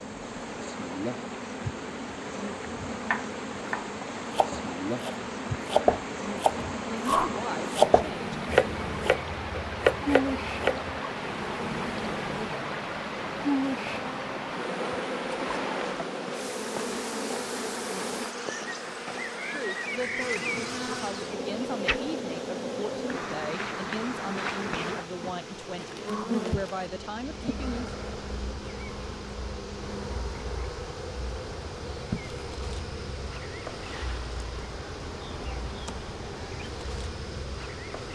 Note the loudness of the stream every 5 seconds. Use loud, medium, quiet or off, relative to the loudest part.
medium, loud, loud, loud, medium, medium, medium, medium.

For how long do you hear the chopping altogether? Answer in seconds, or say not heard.
8 s.